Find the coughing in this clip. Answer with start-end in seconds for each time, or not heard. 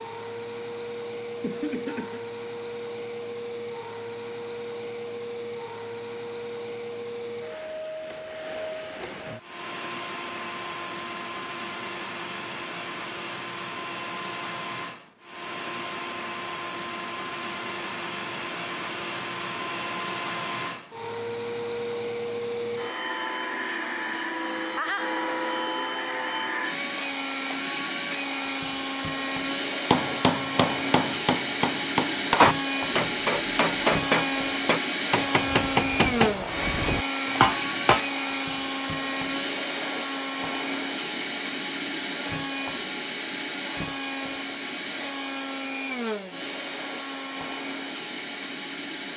1.4-2.2.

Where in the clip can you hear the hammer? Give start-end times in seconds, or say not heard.
29.9-38.0.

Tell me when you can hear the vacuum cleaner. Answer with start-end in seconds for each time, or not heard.
0.0-49.1.